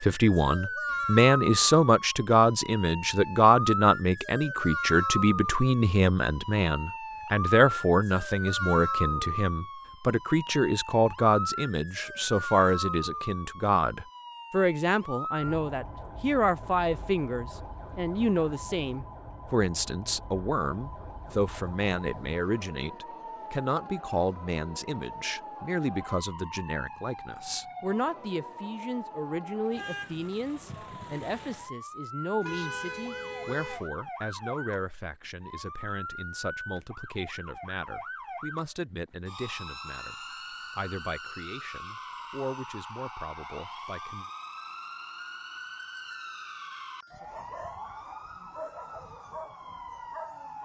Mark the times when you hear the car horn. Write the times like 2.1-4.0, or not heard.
32.4-33.9.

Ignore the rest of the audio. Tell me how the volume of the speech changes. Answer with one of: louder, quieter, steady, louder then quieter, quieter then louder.
quieter.